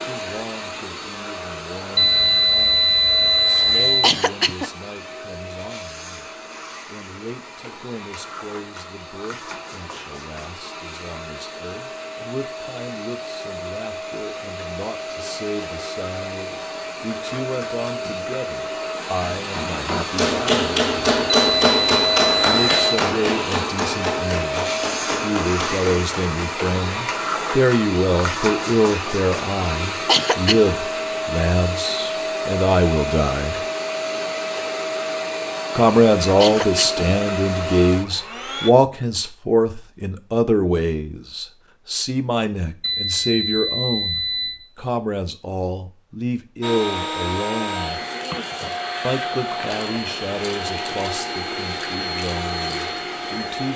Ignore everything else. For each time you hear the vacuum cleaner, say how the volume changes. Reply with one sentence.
The vacuum cleaner can be heard from 0.0 to 38.7 s, getting louder; and from 46.6 to 53.7 s, at a steady volume.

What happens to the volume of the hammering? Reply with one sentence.
The loudness of the hammering goes down.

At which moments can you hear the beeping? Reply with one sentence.
The beeping can be heard from 1.9 to 4.2 s, from 21.3 to 22.8 s and from 42.8 to 44.6 s.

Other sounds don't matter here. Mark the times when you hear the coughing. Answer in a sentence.
The coughing can be heard from 4.0 to 4.7 s, from 30.1 to 30.7 s and from 36.4 to 37.0 s.